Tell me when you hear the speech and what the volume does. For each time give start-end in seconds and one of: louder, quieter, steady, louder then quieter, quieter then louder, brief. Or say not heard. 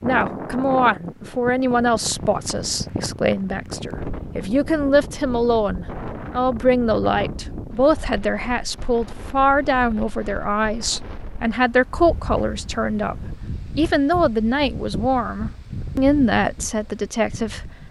0.0-17.8 steady.